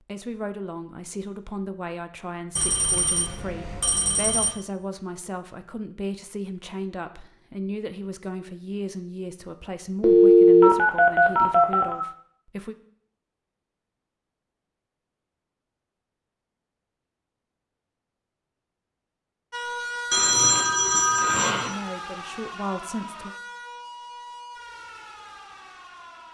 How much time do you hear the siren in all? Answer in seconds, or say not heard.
7 s.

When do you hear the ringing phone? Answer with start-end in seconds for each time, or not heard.
2.5-4.5, 10.0-12.1, 20.1-21.8.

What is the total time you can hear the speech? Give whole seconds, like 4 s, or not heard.
15 s.